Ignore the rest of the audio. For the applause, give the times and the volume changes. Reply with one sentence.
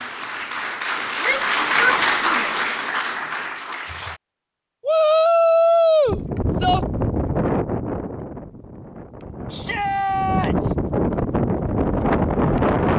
You can hear the applause from 0.0 to 4.2 s, getting louder then quieter.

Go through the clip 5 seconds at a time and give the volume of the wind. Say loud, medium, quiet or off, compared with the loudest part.
off, medium, loud.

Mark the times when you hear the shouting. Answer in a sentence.
You can hear the shouting from 1.2 to 2.6 s, from 4.8 to 6.8 s and from 9.5 to 10.8 s.